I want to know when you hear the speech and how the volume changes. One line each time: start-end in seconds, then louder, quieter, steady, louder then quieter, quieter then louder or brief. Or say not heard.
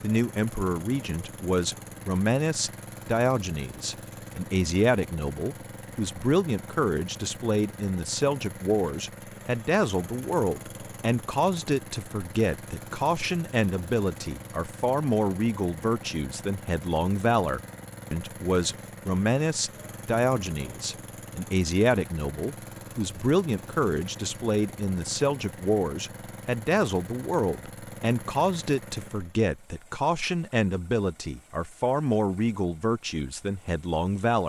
0.0-34.4 steady.